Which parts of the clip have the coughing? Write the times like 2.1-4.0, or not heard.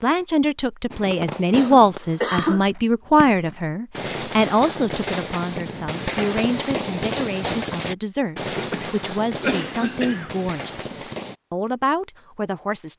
1.5-2.6, 8.5-10.3.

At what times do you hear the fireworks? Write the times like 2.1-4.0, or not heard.
0.9-11.3.